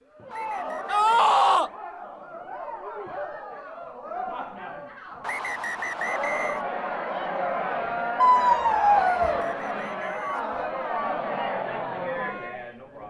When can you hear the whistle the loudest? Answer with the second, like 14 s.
6 s.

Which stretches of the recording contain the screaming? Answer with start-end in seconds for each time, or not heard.
0.9-1.7, 8.2-9.4.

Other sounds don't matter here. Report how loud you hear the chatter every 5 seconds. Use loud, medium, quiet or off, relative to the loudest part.
medium, loud, loud.